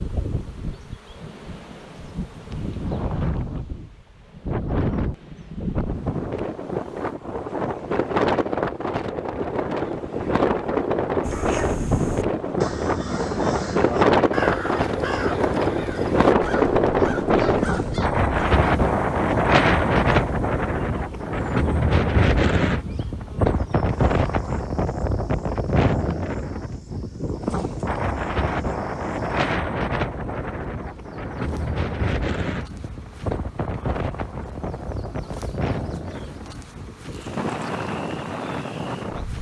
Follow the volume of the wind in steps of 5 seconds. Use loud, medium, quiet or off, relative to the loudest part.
medium, medium, loud, loud, loud, medium, medium, medium.